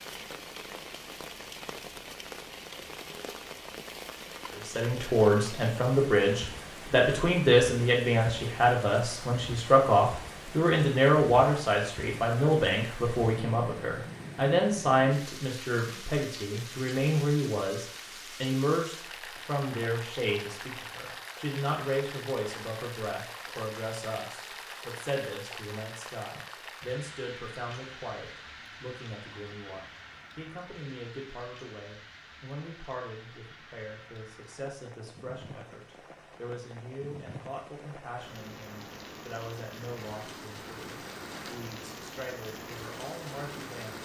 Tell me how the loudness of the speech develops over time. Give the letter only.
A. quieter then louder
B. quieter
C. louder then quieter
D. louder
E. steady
B.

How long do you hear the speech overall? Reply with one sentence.
You can hear the speech for 39 seconds altogether.